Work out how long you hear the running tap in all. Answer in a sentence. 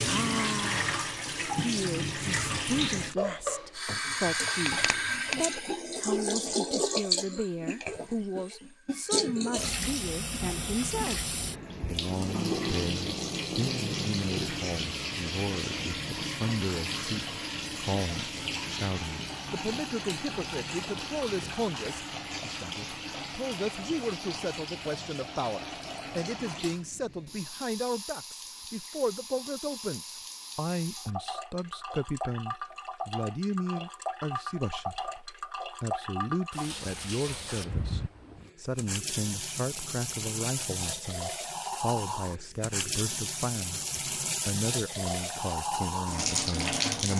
You can hear the running tap for 47 seconds altogether.